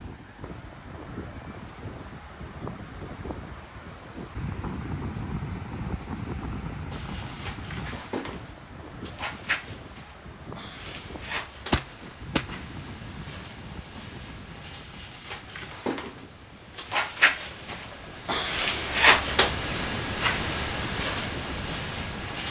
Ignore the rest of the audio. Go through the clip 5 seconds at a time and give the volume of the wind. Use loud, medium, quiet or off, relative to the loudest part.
loud, loud, medium, medium, loud.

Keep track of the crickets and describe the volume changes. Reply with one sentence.
The volume of the crickets goes up.